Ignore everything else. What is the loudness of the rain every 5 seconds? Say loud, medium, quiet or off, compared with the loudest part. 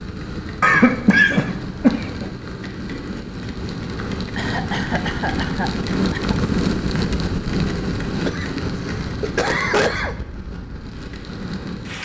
medium, loud, medium.